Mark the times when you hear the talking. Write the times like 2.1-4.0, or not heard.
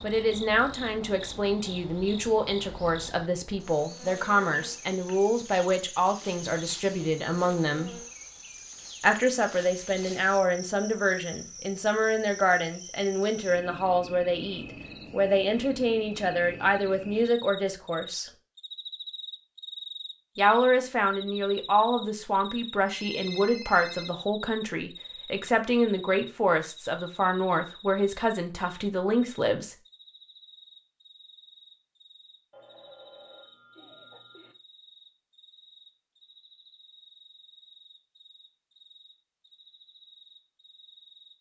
0.0-8.0, 9.0-18.3, 20.4-29.8.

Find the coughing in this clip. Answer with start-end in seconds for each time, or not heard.
not heard.